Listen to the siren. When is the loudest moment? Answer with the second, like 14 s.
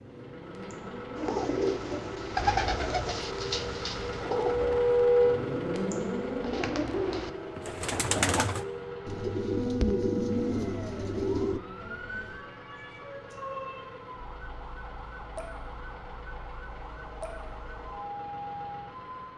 5 s.